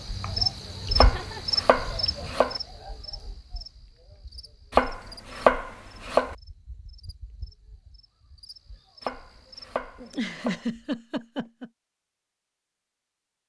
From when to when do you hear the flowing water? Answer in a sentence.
The flowing water can't be heard in this clip.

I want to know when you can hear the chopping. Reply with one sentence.
The chopping can be heard from 0.9 to 2.6 s, from 4.7 to 6.3 s and from 9.0 to 10.7 s.